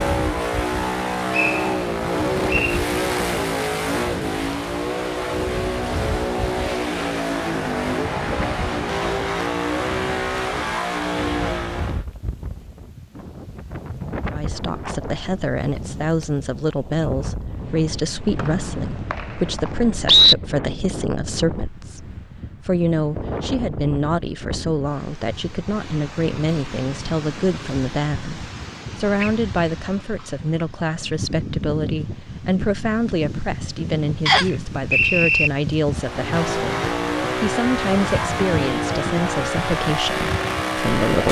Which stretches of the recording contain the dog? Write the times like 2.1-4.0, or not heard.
not heard.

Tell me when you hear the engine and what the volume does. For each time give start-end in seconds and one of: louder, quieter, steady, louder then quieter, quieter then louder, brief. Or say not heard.
0.0-12.1 steady
35.9-41.2 steady.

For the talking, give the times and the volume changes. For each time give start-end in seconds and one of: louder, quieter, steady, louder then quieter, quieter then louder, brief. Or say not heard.
14.3-41.2 steady.